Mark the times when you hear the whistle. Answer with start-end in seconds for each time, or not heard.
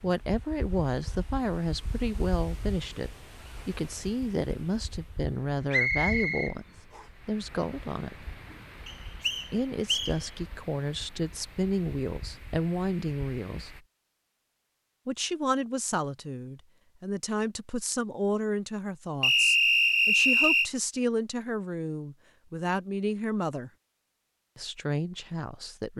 5.7-7.0, 8.8-10.2, 19.2-20.7.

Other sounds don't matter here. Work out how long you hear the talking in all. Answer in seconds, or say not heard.
22 s.